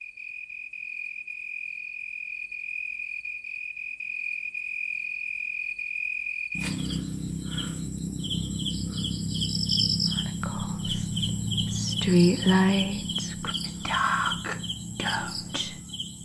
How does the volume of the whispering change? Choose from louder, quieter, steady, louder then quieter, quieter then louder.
louder then quieter.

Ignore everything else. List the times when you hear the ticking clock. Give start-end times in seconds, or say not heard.
not heard.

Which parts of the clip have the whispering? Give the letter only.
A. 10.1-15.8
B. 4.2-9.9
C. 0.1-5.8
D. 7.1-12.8
A.